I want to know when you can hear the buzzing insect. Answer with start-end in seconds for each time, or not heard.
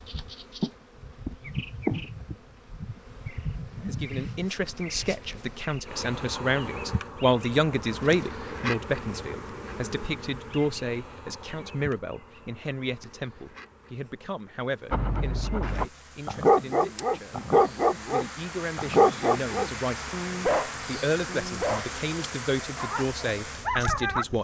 0.0-24.4.